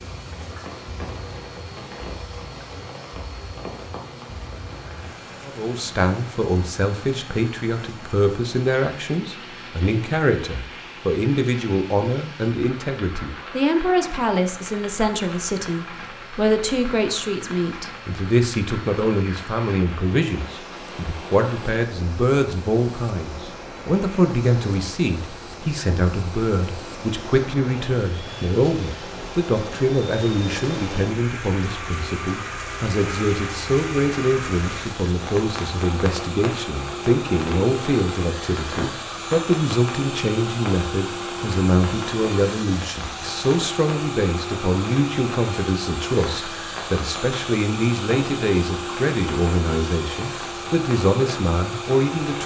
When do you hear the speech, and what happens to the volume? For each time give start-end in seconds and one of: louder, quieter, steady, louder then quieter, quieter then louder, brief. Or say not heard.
5.5-52.4 steady.